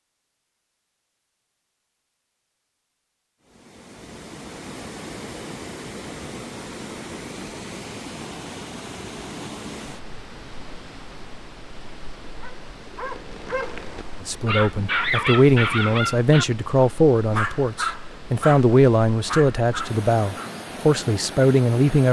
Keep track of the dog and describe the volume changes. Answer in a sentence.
The volume of the dog goes up, then down.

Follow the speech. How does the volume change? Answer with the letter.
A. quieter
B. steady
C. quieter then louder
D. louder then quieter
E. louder
B.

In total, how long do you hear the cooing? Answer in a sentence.
The cooing can't be heard in this clip.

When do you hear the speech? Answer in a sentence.
The speech can be heard from 14.2 to 22.0 s.